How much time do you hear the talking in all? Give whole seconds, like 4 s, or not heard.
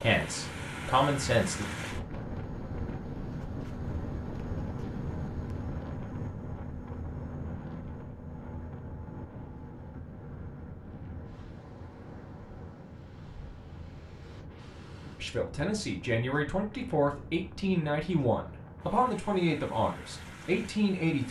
8 s.